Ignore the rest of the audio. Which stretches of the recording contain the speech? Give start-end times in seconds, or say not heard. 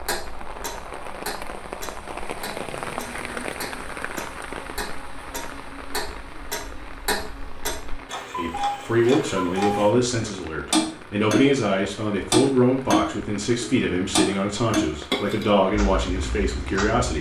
8.3-17.1.